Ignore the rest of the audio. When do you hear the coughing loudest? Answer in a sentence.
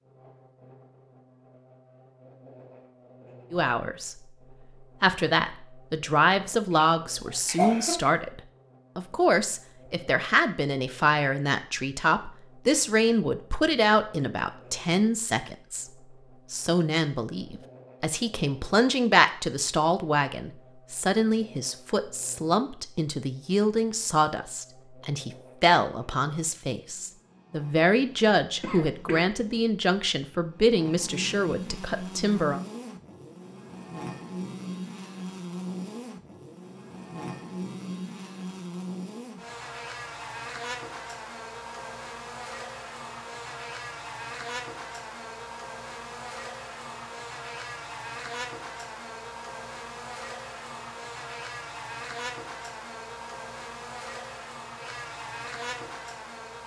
The volume of the coughing peaks at 8 seconds.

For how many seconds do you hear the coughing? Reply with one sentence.
The coughing can be heard for 2 seconds in total.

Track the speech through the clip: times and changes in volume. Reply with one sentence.
You can hear the speech briefly from 3.5 to 4.2 s; from 5.0 to 15.8 s, at a steady volume; and from 16.5 to 32.6 s, at a steady volume.